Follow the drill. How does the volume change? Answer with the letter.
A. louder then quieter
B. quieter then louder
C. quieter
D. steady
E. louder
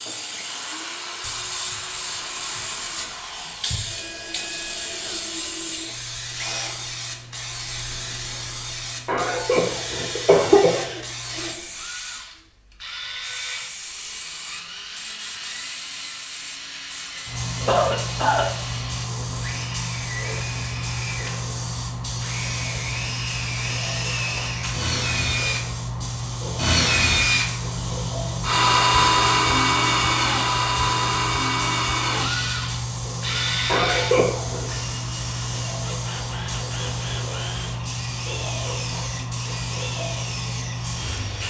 A.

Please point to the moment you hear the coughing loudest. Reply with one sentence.
The loudest moment of the coughing is at 10 seconds.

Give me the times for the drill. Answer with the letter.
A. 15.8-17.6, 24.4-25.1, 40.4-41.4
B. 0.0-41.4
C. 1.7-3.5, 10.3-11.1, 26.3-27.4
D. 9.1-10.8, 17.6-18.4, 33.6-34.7
B.